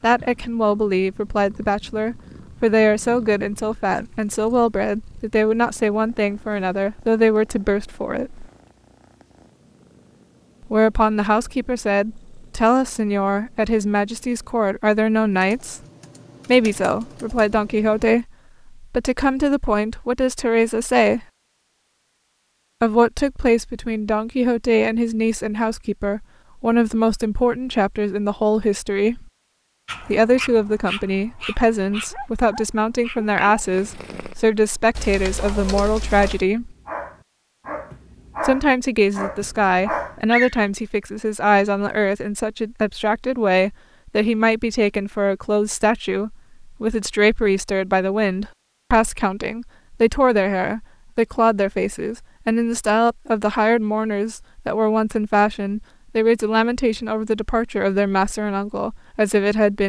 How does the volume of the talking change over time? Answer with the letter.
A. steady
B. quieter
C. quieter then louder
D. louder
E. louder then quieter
A.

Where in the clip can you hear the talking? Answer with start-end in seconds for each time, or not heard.
0.0-8.4, 10.7-15.8, 16.4-21.2, 22.8-29.2, 30.0-36.8, 38.4-59.8.